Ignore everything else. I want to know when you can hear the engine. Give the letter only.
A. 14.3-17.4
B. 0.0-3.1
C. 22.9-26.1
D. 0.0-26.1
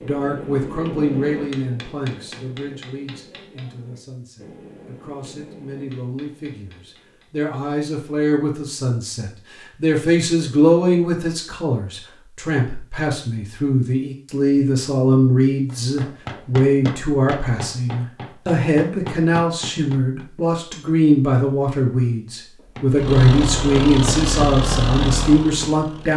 C.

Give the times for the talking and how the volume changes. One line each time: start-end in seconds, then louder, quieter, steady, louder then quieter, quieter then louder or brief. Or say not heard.
0.0-26.1 louder.